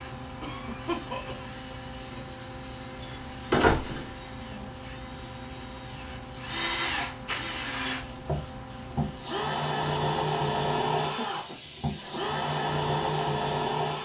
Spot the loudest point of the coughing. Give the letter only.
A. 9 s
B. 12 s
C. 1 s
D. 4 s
C.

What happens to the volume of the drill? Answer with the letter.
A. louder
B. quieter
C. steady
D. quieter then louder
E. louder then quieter
A.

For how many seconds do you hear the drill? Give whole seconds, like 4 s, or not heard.
14 s.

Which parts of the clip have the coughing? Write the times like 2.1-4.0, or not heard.
0.4-2.2, 11.0-12.2.